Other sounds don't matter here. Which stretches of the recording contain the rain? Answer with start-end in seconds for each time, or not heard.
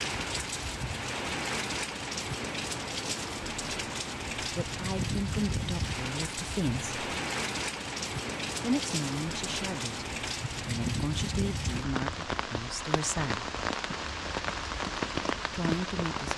0.0-16.3.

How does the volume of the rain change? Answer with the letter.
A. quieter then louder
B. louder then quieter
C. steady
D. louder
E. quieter
C.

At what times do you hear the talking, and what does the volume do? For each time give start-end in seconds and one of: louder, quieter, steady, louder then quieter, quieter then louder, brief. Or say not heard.
4.4-7.0 brief
8.6-13.5 quieter then louder
15.5-16.3 brief.